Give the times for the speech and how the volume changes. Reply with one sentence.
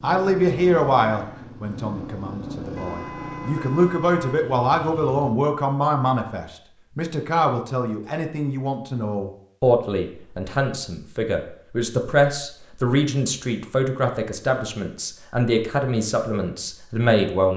The speech can be heard from 0.0 to 17.5 s, at a steady volume.